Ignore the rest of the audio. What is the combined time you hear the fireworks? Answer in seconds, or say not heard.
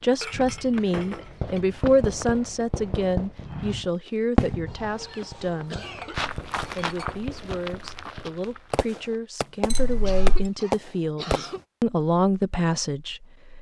11 s.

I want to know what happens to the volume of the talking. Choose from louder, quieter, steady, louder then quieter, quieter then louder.
quieter then louder.